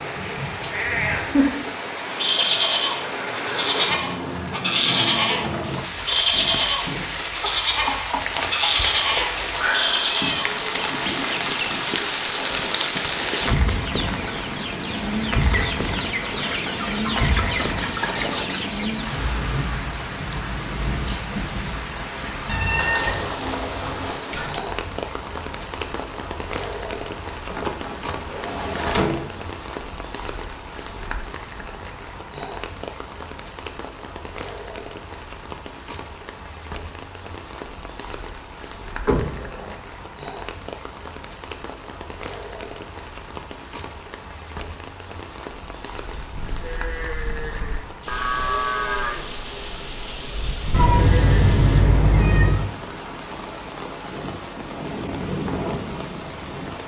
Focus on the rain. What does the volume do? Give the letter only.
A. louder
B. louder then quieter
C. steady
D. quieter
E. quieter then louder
D.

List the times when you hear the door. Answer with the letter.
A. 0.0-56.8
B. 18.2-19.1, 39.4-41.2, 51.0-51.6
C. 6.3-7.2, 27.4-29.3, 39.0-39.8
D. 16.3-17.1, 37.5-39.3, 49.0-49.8
C.